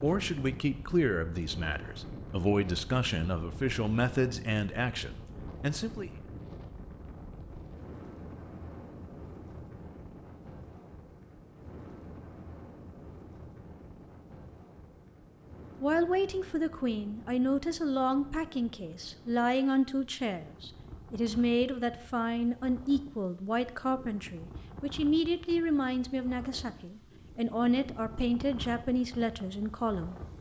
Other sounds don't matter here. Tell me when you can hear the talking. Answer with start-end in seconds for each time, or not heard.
0.0-6.1, 15.8-30.3.